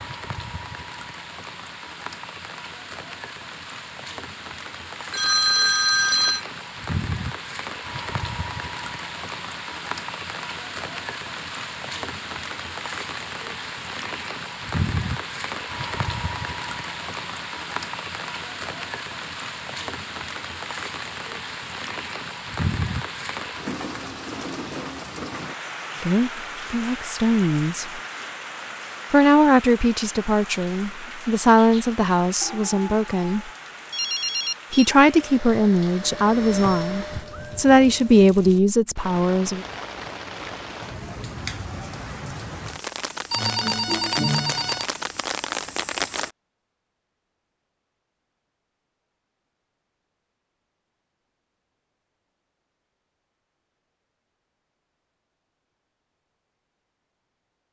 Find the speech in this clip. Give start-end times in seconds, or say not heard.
26.0-27.9, 29.1-33.5, 34.7-39.6.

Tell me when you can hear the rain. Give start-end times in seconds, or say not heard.
0.0-46.3.